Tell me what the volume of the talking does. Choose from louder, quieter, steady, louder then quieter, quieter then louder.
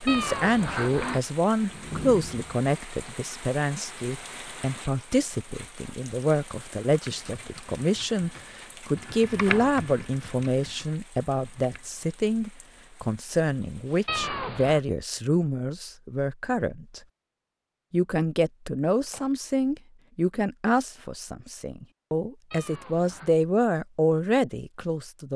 steady.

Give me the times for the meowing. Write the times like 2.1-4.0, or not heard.
0.1-1.2, 14.1-14.8, 22.5-23.4.